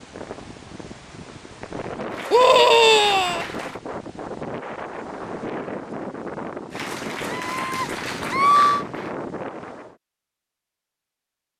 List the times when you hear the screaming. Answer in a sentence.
You can hear the screaming from 2.3 to 3.5 s and from 7.2 to 8.8 s.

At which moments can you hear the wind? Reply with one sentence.
The wind can be heard from 0.0 to 9.9 s.